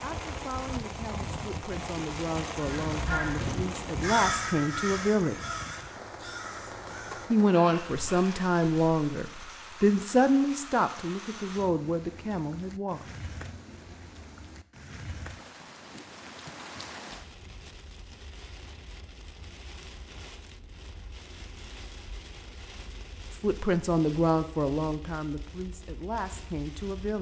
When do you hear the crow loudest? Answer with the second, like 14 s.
4 s.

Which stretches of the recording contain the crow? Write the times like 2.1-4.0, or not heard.
2.5-8.3.